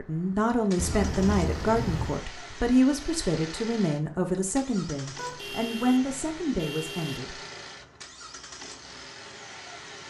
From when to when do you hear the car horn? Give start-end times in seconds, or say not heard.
0.8-2.2, 5.2-7.2.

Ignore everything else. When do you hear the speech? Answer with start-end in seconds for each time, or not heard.
0.0-7.4.